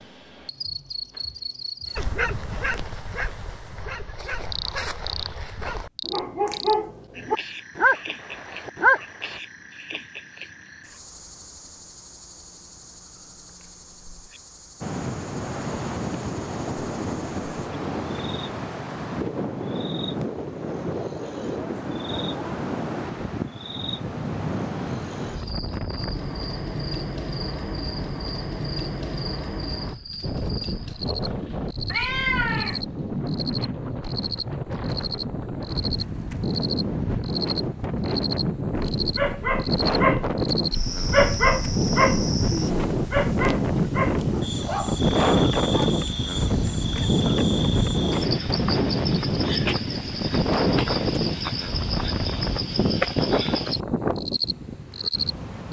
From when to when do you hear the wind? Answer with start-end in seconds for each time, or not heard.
14.8-55.6.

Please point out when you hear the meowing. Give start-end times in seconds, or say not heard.
31.9-32.8.